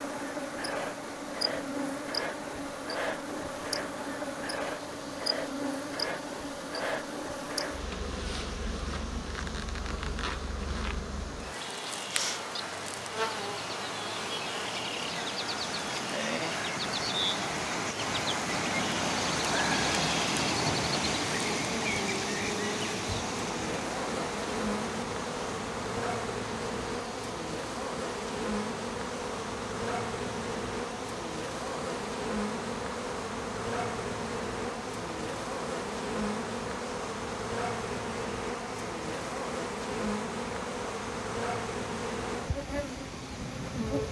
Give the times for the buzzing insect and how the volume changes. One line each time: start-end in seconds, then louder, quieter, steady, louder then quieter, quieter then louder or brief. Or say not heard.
0.0-44.0 steady.